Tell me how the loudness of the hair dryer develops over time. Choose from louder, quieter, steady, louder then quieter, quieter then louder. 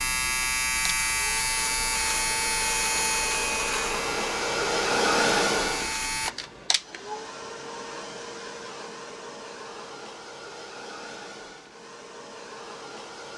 louder then quieter.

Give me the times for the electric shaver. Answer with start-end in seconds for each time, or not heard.
0.0-6.3.